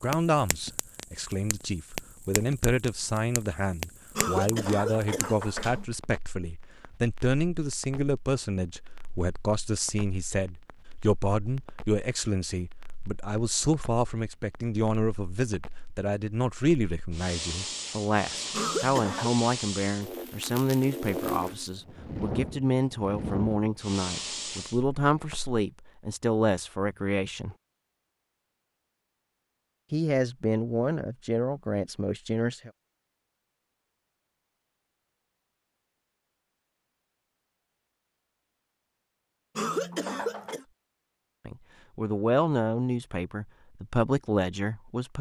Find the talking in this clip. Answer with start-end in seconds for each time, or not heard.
0.0-27.6, 29.9-32.7, 41.5-45.1.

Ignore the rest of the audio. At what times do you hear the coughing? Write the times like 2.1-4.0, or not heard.
4.2-5.8, 18.5-19.3, 39.5-40.6.